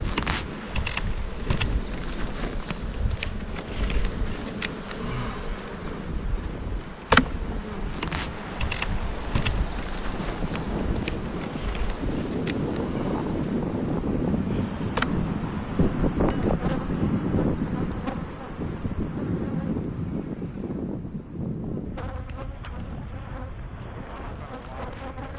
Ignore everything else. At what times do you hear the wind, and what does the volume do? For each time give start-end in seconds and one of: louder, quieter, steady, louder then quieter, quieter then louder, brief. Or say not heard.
0.0-25.3 louder then quieter.